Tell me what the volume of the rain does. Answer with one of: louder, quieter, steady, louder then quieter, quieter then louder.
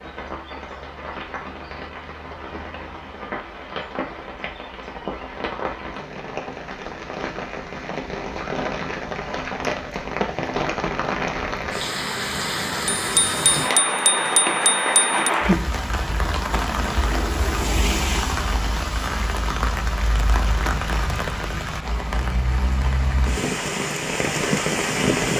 louder.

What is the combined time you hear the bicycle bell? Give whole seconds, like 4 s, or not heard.
2 s.